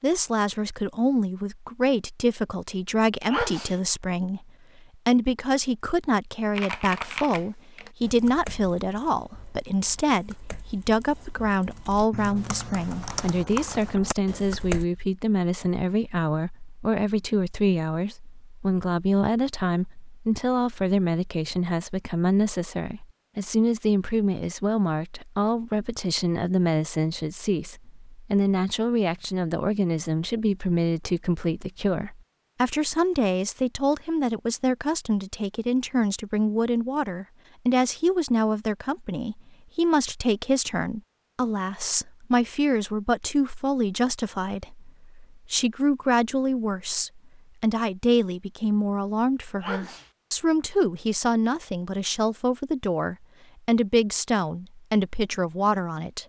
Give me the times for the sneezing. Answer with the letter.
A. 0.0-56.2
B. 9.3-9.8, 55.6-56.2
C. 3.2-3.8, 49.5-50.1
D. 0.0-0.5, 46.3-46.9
C.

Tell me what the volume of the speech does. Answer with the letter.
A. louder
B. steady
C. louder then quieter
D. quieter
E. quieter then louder
B.